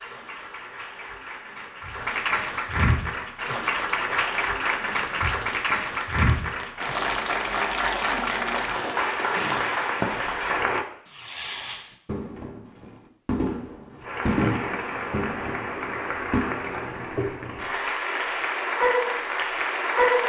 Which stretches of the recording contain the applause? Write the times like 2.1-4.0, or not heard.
0.0-10.8, 14.0-20.2.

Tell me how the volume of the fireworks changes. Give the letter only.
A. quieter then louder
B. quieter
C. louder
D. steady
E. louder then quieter
C.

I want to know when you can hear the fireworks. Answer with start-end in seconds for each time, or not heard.
4.7-16.5.